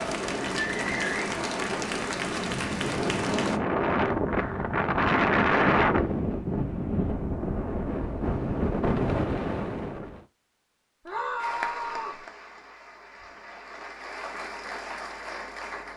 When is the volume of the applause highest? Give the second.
1 s.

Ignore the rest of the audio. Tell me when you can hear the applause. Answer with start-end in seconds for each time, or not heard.
0.0-3.6, 11.3-15.9.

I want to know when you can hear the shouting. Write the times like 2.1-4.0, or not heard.
11.1-12.2.